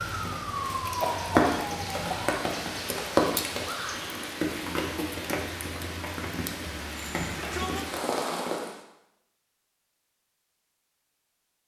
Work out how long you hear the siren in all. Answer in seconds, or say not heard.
2 s.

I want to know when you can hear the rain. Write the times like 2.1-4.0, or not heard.
0.0-8.8.